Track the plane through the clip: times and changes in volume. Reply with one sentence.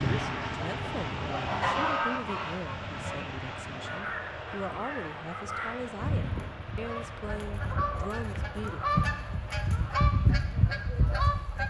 You can hear the plane from 0.0 to 11.6 s, getting quieter.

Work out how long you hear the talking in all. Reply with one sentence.
The talking can be heard for 9 seconds in total.